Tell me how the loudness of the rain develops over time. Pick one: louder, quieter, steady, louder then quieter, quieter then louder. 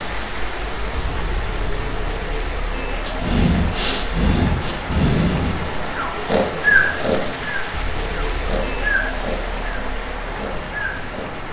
steady.